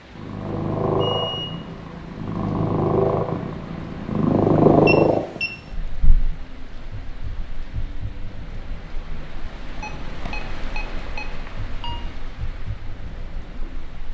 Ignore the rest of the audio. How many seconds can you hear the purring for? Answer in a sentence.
You can hear the purring for 14 seconds altogether.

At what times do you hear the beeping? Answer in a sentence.
The beeping can be heard from 0.9 to 1.6 s, from 4.8 to 5.5 s and from 9.8 to 12.0 s.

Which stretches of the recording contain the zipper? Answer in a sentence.
You can't hear the zipper here.